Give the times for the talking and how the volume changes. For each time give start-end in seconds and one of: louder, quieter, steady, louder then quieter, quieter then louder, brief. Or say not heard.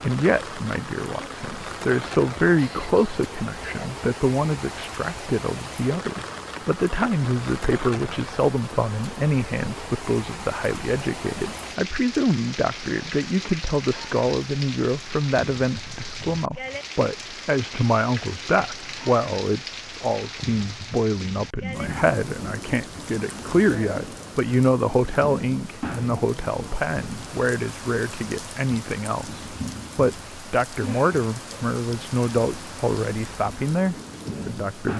0.0-34.9 steady.